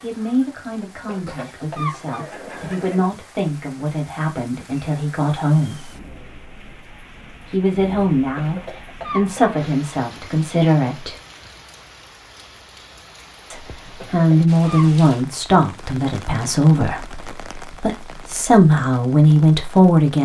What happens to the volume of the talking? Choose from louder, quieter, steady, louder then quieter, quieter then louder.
louder.